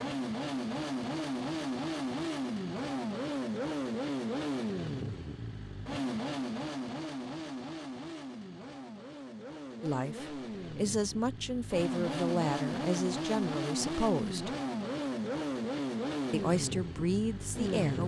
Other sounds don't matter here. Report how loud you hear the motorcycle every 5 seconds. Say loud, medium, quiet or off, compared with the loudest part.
loud, medium, loud, loud.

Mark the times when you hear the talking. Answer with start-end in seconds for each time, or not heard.
9.8-14.6, 16.3-18.0.